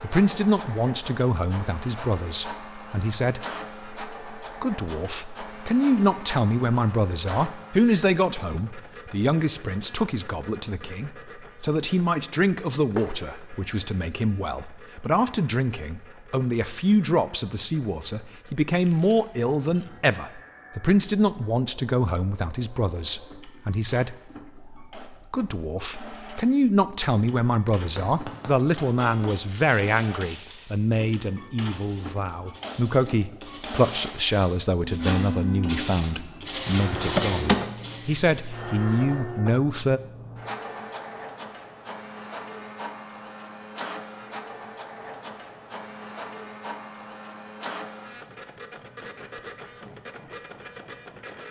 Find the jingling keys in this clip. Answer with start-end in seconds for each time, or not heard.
12.9-14.2, 18.8-20.0, 36.6-37.6.